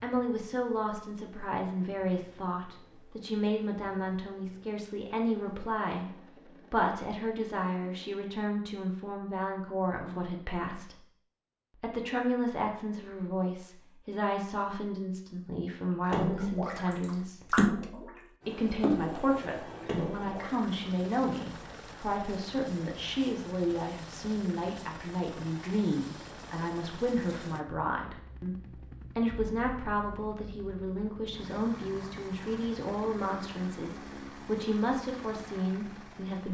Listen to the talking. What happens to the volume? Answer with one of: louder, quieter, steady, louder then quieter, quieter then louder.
steady.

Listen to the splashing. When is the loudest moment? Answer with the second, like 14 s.
18 s.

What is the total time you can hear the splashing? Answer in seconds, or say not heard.
5 s.